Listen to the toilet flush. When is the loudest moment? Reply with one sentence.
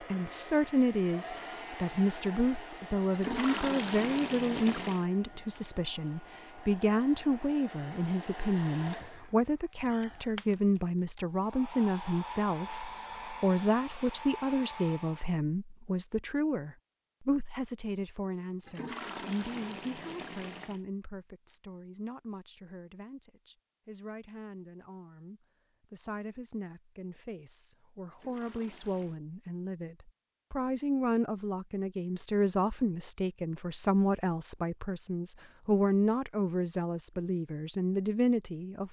The volume of the toilet flush peaks at 4 seconds.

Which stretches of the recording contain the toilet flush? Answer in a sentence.
You can hear the toilet flush from 3.1 to 5.0 s, from 18.6 to 20.8 s and from 28.1 to 29.2 s.